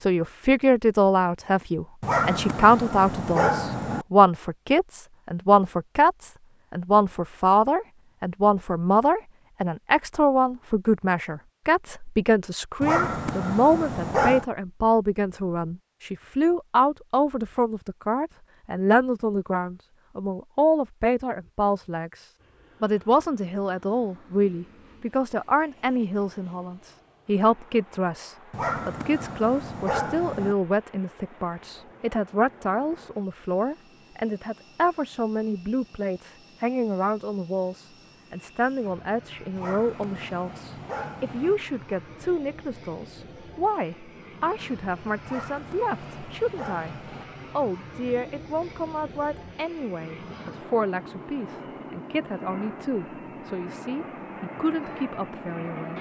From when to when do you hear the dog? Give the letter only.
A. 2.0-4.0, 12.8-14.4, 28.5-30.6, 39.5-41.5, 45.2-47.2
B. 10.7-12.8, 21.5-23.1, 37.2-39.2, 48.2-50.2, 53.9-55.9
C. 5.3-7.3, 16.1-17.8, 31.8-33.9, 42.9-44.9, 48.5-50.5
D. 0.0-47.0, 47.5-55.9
A.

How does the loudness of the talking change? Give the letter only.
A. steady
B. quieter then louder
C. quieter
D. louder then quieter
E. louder
C.